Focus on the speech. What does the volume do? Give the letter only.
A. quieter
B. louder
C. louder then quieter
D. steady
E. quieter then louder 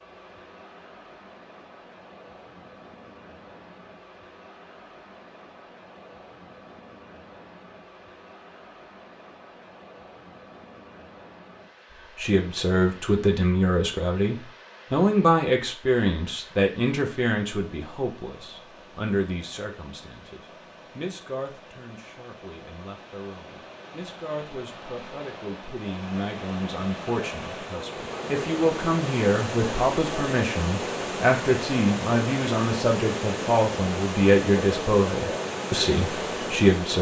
E.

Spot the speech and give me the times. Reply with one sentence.
You can hear the speech from 12.2 to 36.9 s.